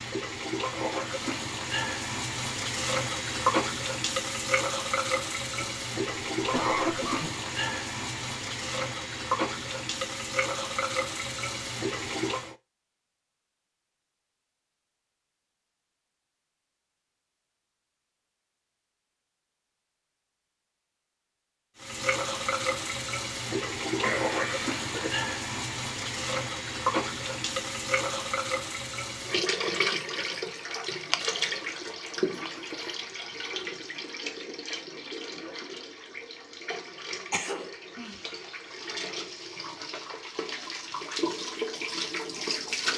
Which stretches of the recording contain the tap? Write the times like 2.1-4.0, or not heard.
0.0-12.6, 21.8-42.9.